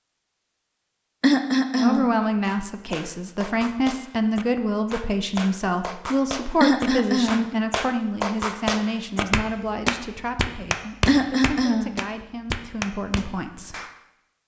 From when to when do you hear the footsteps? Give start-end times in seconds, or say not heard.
not heard.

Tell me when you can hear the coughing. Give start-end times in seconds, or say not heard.
1.2-2.1, 6.6-7.5, 11.1-11.9.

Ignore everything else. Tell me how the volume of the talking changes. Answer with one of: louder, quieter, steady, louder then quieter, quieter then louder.
quieter.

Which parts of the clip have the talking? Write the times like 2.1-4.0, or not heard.
1.7-13.8.